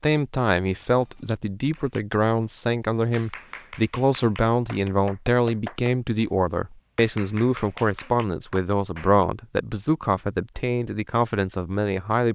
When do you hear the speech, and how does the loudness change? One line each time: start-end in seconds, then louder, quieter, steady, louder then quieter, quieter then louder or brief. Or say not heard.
0.0-12.2 steady.